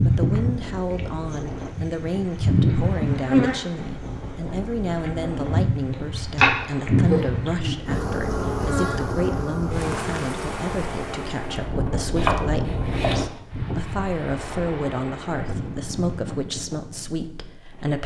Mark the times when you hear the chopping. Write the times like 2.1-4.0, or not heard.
6.3-7.2, 11.8-13.9.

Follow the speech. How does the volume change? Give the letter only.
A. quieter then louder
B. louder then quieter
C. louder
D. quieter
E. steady
E.